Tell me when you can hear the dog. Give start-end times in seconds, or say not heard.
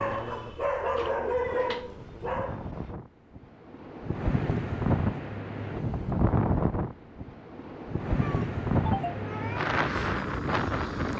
0.0-3.0.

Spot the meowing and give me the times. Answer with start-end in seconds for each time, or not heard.
0.9-1.9, 8.2-9.7.